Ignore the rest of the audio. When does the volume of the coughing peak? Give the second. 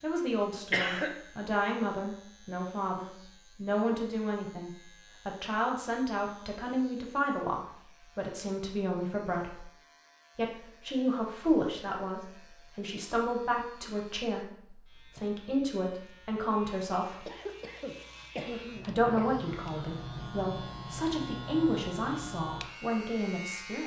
1 s.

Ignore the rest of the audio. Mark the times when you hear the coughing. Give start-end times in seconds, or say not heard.
0.7-1.1, 17.2-19.2.